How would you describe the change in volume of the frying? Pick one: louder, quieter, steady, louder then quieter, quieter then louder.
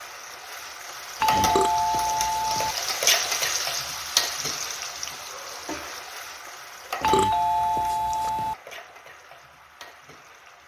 louder then quieter.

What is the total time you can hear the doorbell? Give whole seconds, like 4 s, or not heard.
3 s.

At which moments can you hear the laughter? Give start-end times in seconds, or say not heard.
not heard.